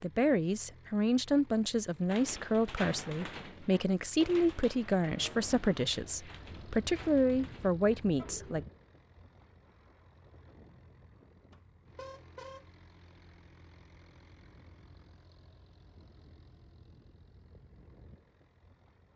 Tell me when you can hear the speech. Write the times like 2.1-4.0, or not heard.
0.0-8.7.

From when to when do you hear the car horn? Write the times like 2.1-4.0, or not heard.
11.5-12.7.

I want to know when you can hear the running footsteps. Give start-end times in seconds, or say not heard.
not heard.